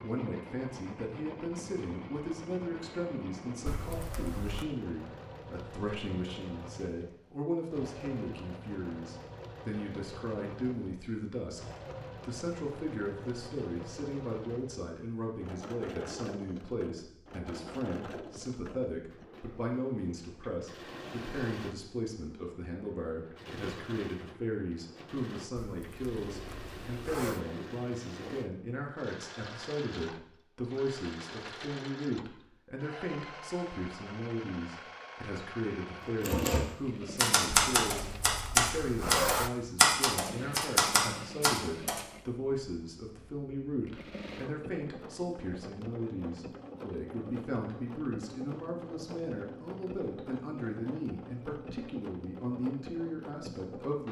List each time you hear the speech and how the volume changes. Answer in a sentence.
You can hear the speech from 0.0 to 11.6 s, at a steady volume; and from 12.2 to 54.0 s, at a steady volume.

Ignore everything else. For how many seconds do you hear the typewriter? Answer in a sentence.
The typewriter can be heard for 6 seconds in total.